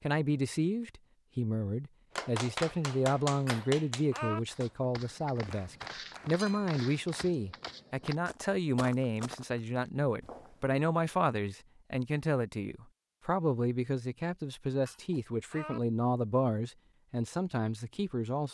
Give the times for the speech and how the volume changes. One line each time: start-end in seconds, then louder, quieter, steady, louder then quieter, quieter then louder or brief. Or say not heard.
0.0-18.4 steady.